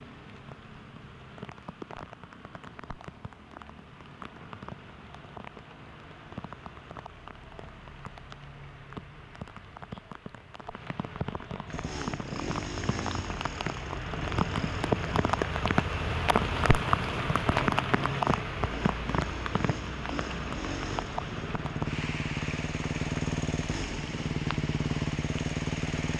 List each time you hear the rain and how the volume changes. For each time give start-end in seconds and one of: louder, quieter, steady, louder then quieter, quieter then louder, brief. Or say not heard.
0.0-26.1 louder then quieter.